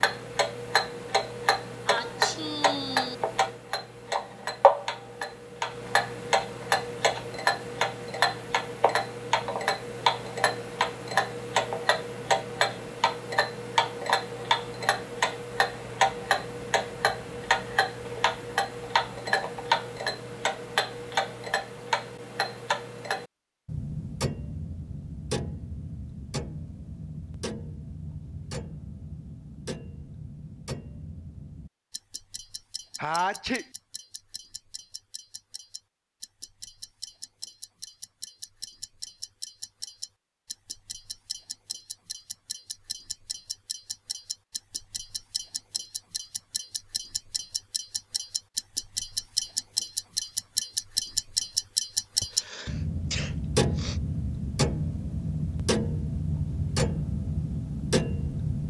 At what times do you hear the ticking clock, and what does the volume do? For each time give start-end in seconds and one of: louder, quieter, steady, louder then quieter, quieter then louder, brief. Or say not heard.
0.0-58.6 quieter then louder.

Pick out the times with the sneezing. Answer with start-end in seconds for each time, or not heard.
1.9-3.1, 33.0-33.6, 52.2-54.0.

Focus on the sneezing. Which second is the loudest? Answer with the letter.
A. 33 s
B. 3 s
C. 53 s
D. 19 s
A.